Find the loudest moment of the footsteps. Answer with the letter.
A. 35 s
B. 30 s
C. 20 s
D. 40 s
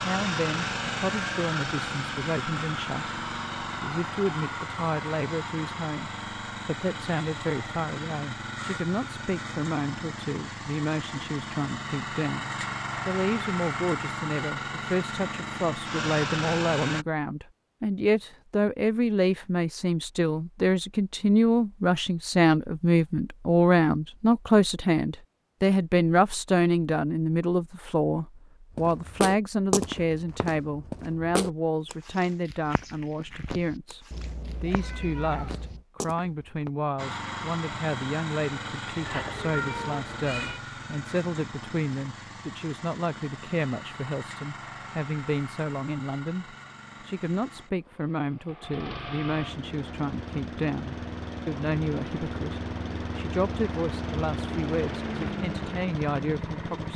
B.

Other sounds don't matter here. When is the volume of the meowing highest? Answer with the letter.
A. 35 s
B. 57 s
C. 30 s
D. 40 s
D.